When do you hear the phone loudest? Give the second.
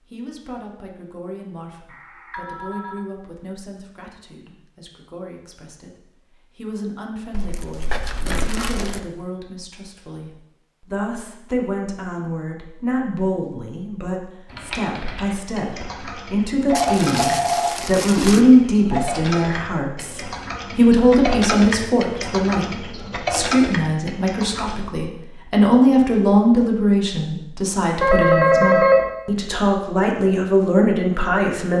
29 s.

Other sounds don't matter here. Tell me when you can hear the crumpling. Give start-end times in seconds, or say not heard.
7.3-9.0, 16.7-18.4.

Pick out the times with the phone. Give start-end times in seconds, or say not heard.
1.9-3.0, 16.7-19.1, 28.0-29.1.